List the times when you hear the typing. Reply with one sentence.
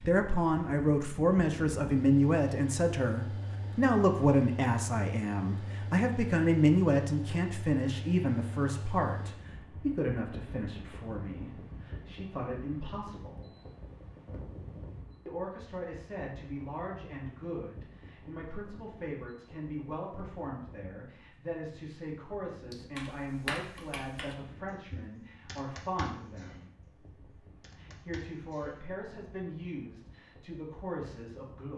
You can hear the typing from 22.7 to 28.8 s.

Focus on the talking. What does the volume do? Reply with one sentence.
The loudness of the talking goes down.